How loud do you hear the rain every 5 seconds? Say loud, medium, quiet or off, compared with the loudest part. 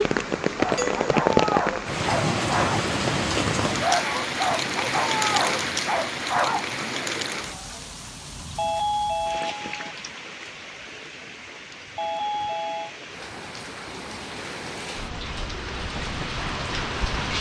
loud, medium, quiet, medium.